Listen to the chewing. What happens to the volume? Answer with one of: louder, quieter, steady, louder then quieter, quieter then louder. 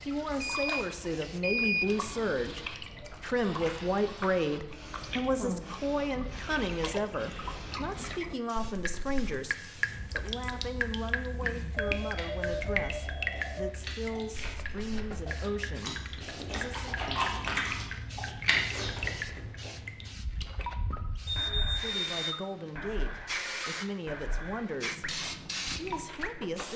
louder.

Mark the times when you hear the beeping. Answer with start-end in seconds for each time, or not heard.
0.4-1.9, 11.8-13.7, 21.2-22.4.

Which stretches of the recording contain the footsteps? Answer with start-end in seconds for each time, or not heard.
not heard.